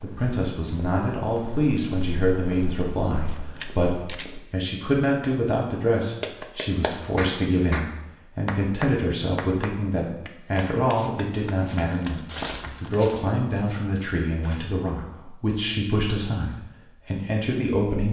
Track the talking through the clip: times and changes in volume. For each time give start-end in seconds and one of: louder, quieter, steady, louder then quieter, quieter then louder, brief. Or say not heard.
0.0-18.0 steady.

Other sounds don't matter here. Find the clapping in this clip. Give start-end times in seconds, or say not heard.
6.2-13.1.